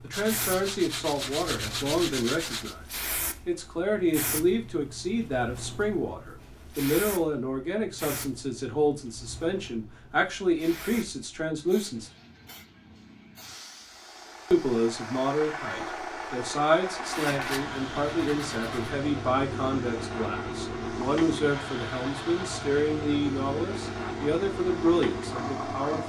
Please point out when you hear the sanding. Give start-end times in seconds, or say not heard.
0.1-2.8, 17.1-18.9.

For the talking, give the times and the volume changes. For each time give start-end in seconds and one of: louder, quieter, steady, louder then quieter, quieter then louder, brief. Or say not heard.
0.0-12.1 steady
14.5-26.0 steady.